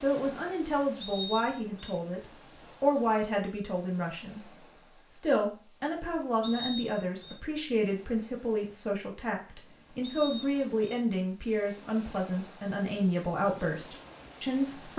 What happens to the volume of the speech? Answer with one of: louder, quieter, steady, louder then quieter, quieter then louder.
steady.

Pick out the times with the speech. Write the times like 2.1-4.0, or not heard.
0.0-14.9.